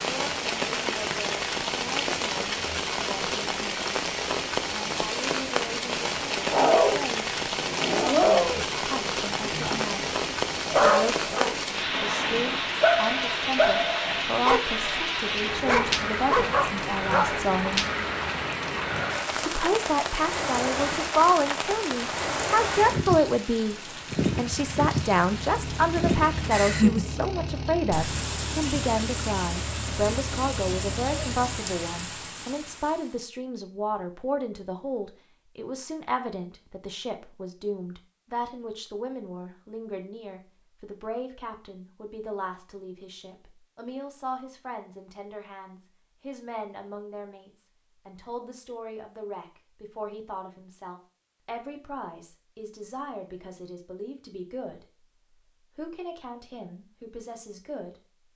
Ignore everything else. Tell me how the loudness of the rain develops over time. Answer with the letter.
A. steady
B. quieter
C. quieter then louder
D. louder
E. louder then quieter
A.